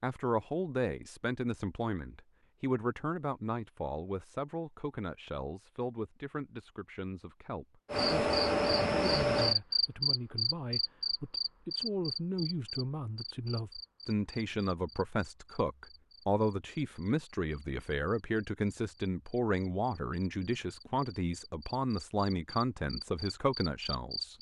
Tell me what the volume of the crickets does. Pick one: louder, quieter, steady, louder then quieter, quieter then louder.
quieter then louder.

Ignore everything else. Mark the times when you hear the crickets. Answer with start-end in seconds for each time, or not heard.
7.9-24.3.